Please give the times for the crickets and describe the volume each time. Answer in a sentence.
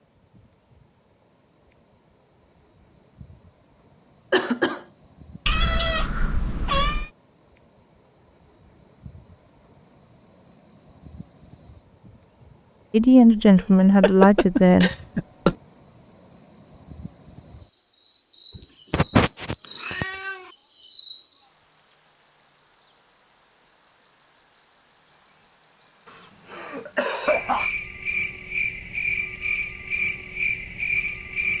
You can hear the crickets from 0.0 to 31.5 s, getting louder.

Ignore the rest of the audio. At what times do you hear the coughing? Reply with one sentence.
The coughing can be heard from 4.3 to 4.8 s, from 13.6 to 15.6 s and from 26.1 to 27.7 s.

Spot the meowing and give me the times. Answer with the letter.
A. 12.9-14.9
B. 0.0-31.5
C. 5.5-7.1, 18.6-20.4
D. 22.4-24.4
C.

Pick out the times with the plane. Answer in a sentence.
The plane can't be heard in this clip.